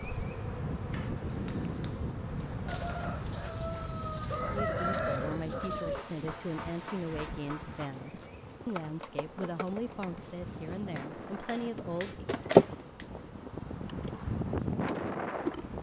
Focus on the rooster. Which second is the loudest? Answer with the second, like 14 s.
5 s.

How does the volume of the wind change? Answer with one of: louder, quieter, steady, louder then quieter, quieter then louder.
quieter then louder.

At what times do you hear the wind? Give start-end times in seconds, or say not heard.
0.0-15.7.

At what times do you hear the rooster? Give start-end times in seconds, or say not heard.
2.6-6.2.